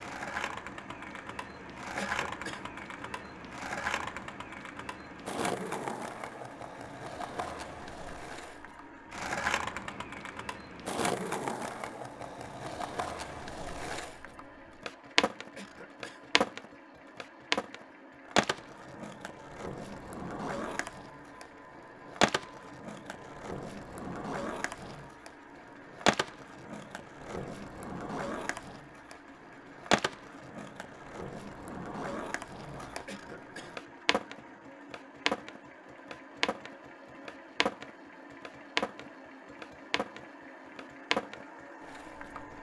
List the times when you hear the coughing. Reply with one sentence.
The coughing can be heard from 1.9 to 2.7 s, from 15.6 to 16.3 s and from 33.0 to 33.8 s.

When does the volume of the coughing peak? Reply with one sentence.
The volume of the coughing peaks at 2 seconds.